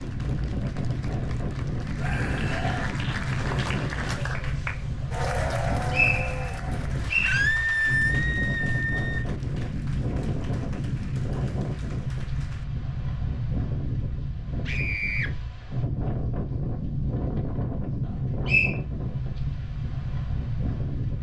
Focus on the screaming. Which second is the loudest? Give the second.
8 s.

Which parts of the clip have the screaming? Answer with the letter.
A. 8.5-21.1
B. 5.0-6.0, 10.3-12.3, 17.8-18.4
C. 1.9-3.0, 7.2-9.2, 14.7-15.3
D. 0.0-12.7
C.